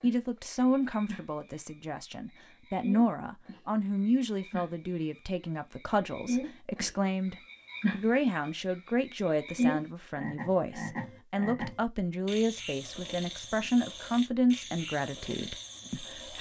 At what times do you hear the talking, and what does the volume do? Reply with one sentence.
You can hear the talking from 0.0 to 16.3 s, at a steady volume.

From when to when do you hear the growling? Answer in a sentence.
The growling can't be heard in this clip.